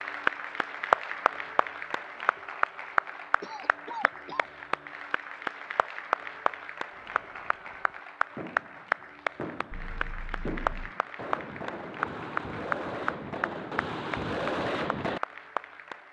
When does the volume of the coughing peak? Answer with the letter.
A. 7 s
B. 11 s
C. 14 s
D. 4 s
D.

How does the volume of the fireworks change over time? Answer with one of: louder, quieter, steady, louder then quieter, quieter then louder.
louder.